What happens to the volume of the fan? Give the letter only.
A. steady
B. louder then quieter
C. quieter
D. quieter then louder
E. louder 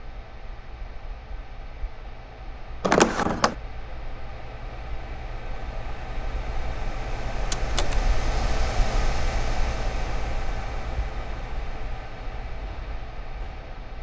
B.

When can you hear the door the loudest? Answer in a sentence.
The volume of the door peaks at 3 seconds.